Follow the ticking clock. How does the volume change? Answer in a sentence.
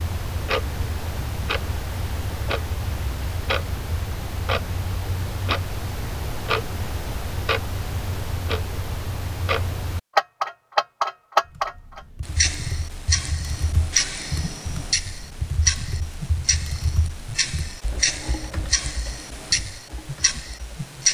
The loudness of the ticking clock goes up, then down.